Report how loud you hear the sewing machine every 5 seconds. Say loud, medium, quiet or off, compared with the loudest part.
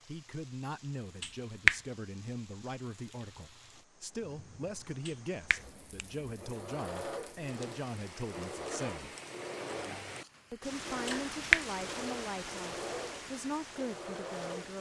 off, loud, loud.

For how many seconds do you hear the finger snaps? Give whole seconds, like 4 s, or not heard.
2 s.